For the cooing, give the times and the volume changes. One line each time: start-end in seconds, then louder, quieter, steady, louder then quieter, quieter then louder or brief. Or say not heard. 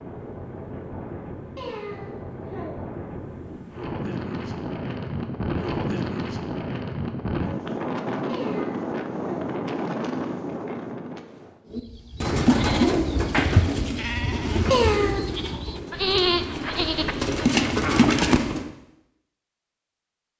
11.7-18.7 quieter then louder.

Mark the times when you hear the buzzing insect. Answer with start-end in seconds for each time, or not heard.
not heard.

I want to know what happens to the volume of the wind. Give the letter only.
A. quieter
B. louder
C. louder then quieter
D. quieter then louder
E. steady
B.